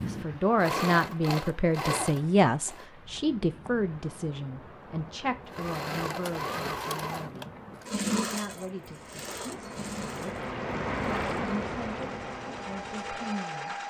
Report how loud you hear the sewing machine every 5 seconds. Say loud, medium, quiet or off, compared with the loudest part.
loud, loud, medium.